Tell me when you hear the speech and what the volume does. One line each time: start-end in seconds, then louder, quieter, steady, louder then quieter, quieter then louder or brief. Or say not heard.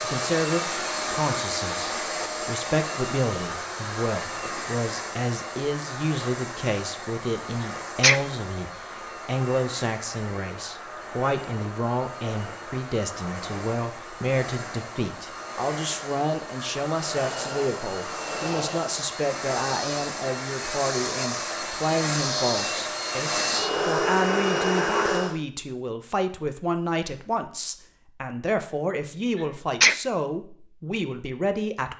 0.0-31.9 steady.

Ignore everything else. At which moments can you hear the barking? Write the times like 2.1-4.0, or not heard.
not heard.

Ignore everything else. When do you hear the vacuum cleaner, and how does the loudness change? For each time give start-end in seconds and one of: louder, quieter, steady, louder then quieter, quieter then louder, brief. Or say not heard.
0.0-25.4 quieter then louder.